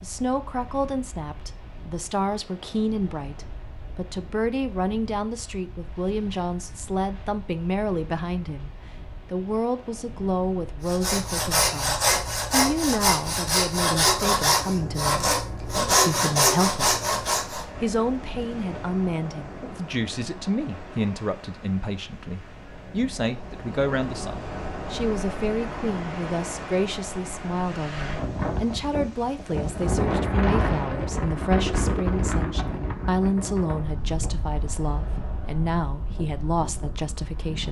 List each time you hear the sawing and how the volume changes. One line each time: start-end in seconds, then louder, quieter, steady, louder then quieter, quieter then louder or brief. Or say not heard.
10.8-17.6 steady.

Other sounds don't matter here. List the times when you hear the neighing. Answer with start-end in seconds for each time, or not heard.
not heard.